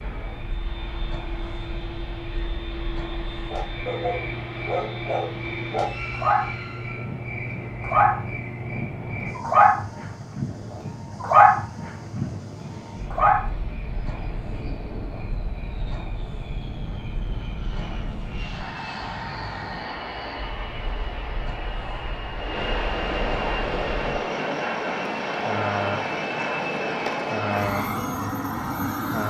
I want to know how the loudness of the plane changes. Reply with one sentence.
The volume of the plane goes up.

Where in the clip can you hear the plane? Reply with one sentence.
You can hear the plane from 0.0 to 29.2 s.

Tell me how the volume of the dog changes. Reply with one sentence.
The loudness of the dog goes up.